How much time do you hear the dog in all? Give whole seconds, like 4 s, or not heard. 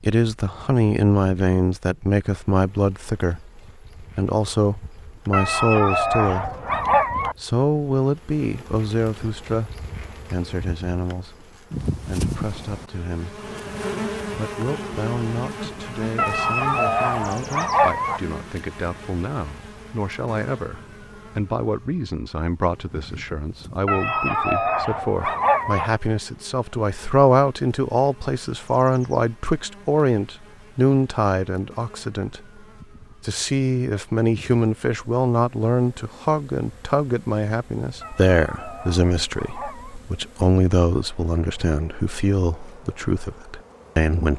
8 s.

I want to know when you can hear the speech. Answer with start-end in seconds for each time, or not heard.
0.0-6.5, 7.3-11.4, 12.1-13.4, 14.3-32.4, 33.2-44.3.